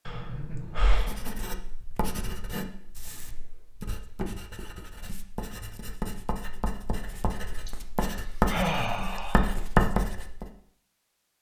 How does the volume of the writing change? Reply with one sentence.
The loudness of the writing goes up.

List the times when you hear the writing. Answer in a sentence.
The writing can be heard from 1.0 to 10.4 s.